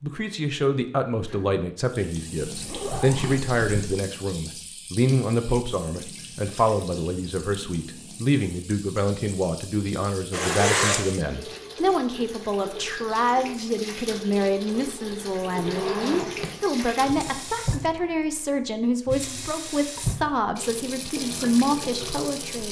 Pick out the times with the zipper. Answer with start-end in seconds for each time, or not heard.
2.5-4.0, 10.3-11.2, 15.6-17.4.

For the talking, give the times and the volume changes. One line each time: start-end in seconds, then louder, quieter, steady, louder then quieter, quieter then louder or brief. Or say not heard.
0.0-22.6 steady.